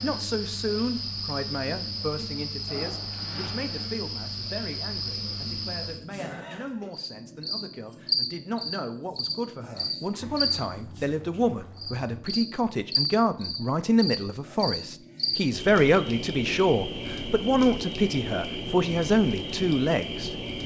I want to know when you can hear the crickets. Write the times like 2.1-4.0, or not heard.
0.0-20.6.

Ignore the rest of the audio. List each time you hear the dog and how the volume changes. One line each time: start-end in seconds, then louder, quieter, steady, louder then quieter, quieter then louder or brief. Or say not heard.
not heard.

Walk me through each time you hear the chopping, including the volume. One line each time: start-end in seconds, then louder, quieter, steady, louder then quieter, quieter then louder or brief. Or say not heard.
not heard.